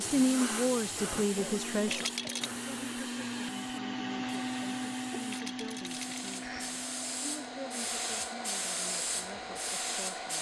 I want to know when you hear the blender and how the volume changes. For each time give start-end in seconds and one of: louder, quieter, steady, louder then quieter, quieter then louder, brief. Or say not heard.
0.0-10.3 louder then quieter.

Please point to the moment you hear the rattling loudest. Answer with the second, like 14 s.
2 s.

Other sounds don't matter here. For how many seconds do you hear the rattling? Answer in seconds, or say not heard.
2 s.